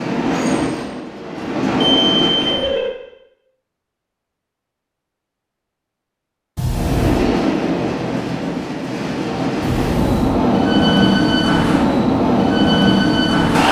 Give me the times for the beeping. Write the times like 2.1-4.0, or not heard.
1.8-2.9, 6.5-7.3, 9.6-10.4.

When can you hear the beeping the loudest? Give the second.
2 s.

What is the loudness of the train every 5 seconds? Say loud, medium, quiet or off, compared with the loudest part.
medium, medium, loud.